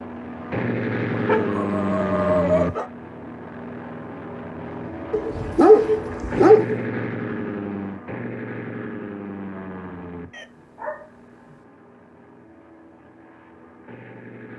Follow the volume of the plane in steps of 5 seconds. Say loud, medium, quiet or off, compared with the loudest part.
loud, loud, quiet.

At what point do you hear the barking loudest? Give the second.
6 s.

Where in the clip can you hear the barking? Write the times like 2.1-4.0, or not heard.
1.1-2.9, 5.1-6.8, 10.3-11.6.